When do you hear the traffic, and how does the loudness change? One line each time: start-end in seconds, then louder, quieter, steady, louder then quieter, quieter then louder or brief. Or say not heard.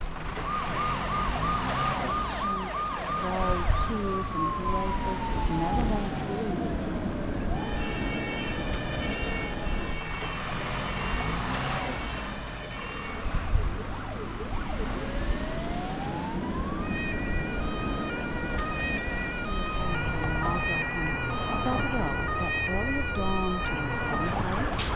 0.0-24.9 steady.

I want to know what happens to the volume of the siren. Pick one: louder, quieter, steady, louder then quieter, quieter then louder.
quieter then louder.